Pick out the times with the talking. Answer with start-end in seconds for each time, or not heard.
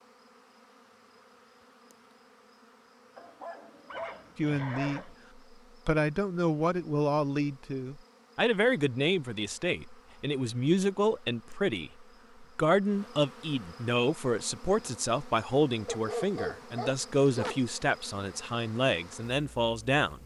4.3-5.1, 5.8-20.2.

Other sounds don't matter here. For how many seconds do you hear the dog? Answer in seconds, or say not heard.
4 s.